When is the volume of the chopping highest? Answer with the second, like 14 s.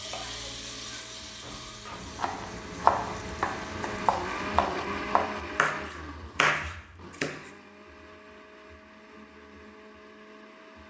3 s.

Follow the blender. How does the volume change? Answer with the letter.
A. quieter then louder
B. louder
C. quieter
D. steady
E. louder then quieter
E.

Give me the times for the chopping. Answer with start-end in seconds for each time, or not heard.
1.9-7.3.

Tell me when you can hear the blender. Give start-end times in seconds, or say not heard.
0.0-10.8.